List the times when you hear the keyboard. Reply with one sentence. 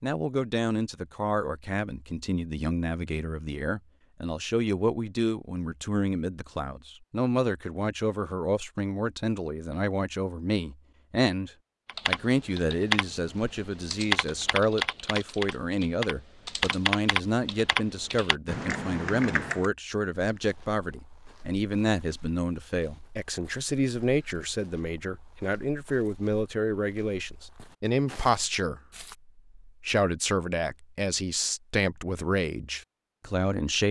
The keyboard can be heard from 11.8 to 19.7 s.